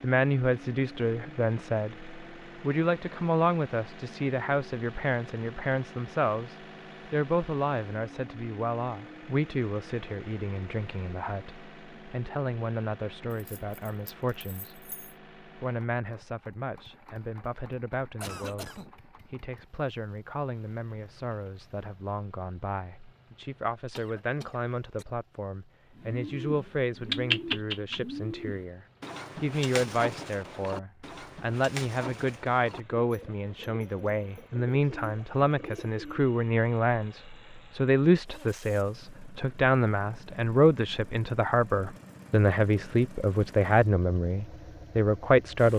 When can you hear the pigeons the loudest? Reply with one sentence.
The loudest moment of the pigeons is at 27 seconds.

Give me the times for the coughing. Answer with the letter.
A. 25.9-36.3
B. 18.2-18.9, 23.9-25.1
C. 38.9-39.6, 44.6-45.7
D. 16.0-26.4
B.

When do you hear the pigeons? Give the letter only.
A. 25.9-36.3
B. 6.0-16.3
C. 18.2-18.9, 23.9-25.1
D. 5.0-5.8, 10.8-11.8
A.